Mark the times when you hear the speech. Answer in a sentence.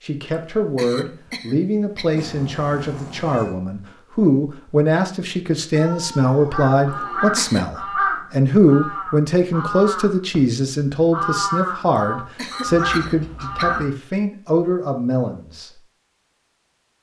You can hear the speech from 0.0 to 15.7 s.